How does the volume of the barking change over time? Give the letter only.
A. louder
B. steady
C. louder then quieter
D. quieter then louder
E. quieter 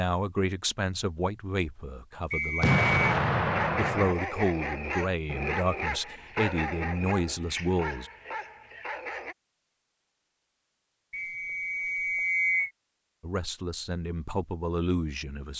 E.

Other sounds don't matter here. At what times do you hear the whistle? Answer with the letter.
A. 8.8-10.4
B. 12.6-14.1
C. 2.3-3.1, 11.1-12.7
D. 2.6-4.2
C.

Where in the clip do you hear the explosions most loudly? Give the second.
3 s.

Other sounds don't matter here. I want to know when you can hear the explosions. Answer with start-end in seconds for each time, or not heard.
2.6-4.2.